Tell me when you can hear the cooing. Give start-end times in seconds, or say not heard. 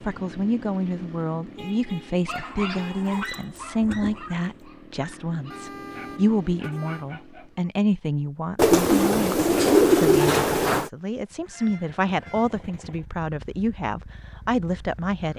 2.3-4.4, 8.6-10.9.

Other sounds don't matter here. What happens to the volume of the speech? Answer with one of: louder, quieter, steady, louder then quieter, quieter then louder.
steady.